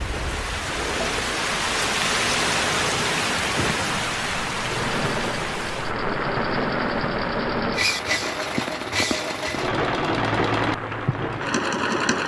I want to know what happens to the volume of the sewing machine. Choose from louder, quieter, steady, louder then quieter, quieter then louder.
louder.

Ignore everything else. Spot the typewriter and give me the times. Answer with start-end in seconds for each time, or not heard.
not heard.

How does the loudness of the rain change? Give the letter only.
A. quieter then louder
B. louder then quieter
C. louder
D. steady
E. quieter
E.